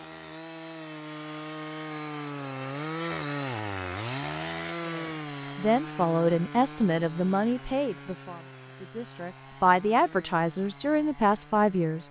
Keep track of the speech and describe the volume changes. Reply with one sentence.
The volume of the speech goes down, then up.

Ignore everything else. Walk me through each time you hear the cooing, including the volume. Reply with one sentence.
The cooing can't be heard in this clip.